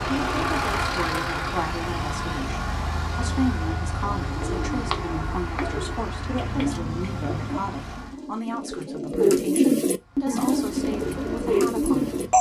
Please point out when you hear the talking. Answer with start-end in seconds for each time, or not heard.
0.1-12.2.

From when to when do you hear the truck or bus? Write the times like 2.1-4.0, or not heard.
0.0-8.2, 9.9-12.3.